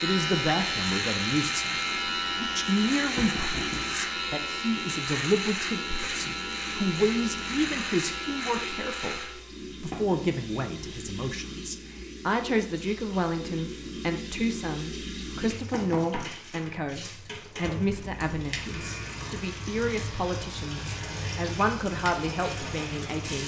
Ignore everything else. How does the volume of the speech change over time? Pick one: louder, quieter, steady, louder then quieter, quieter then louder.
steady.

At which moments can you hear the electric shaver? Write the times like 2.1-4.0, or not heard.
0.0-9.4, 17.3-23.4.